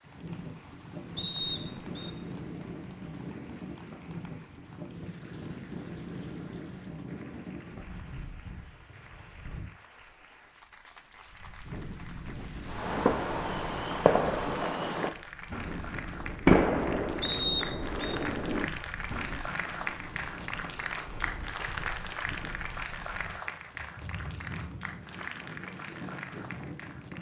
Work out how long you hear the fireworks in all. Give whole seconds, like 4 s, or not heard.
7 s.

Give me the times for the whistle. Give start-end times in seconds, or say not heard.
1.1-2.1, 17.2-18.1.